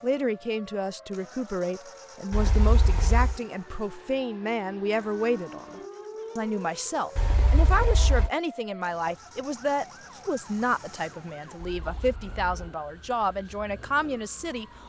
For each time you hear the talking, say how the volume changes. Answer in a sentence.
You can hear the talking from 0.0 to 14.7 s, at a steady volume.